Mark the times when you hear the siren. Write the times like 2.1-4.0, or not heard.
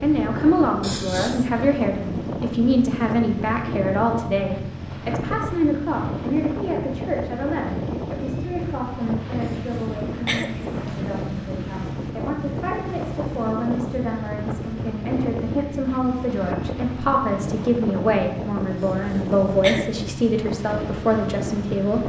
not heard.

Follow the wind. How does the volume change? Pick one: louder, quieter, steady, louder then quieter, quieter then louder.
steady.